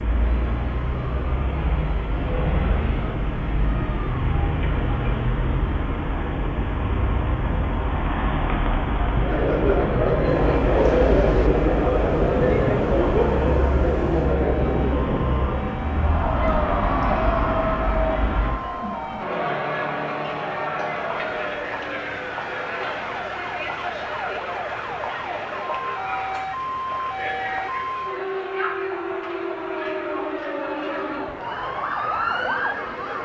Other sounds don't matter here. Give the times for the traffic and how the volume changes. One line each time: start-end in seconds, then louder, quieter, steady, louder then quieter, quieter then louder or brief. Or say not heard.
0.0-18.6 steady.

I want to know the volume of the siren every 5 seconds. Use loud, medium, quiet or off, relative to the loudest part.
off, off, quiet, medium, medium, loud, loud.